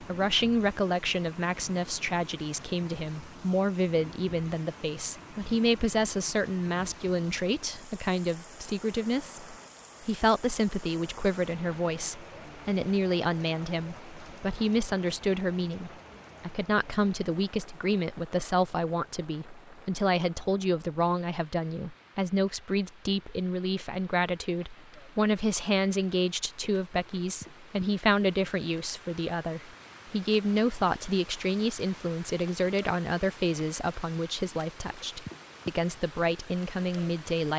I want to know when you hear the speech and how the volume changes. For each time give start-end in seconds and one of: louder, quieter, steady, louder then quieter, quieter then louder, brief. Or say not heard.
0.0-37.5 steady.